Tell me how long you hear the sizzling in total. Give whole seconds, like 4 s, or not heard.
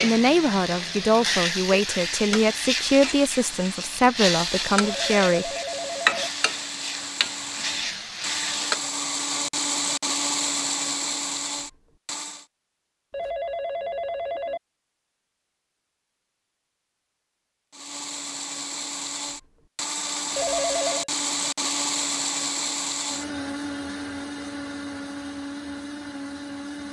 9 s.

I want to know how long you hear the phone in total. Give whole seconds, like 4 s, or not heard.
4 s.